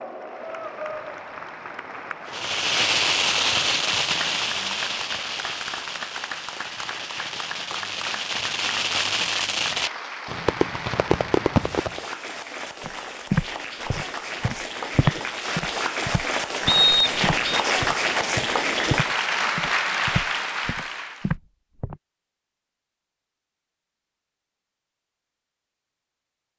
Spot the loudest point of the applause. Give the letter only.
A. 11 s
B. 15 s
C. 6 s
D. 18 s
D.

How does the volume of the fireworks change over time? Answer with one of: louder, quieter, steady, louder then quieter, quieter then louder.
quieter then louder.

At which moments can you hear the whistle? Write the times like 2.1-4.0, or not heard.
16.6-17.6.